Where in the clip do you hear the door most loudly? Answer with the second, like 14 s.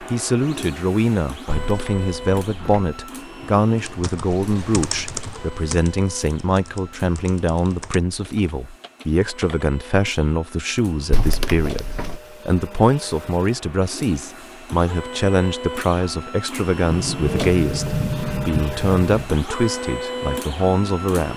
18 s.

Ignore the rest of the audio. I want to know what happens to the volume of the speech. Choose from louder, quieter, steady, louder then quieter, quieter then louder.
steady.